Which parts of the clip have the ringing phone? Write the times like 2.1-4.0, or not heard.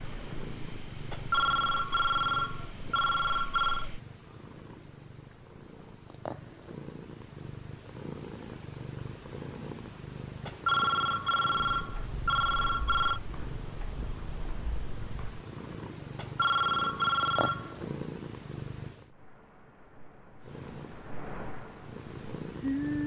1.1-3.9, 10.4-13.2, 16.1-17.8.